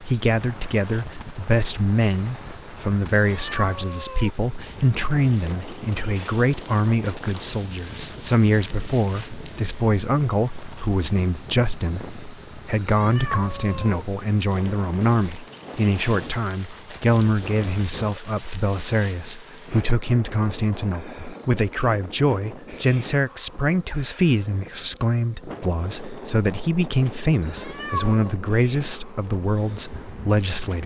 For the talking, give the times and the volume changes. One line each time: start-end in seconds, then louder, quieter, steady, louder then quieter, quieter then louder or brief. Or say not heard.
0.0-30.8 steady.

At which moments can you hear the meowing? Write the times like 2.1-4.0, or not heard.
3.0-4.3, 12.8-14.1, 27.4-28.2.